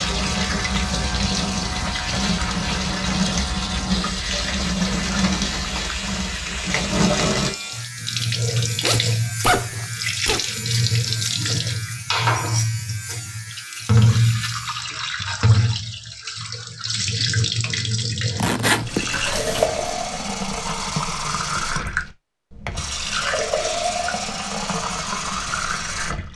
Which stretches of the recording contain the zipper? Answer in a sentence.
The zipper can be heard from 8.8 to 10.4 s and from 18.4 to 19.9 s.